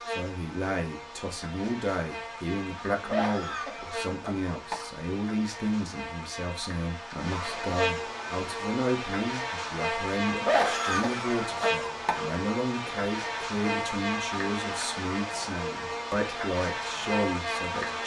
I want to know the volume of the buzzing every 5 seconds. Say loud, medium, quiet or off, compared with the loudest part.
medium, loud, loud, loud.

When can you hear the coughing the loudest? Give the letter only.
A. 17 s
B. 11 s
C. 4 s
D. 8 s
B.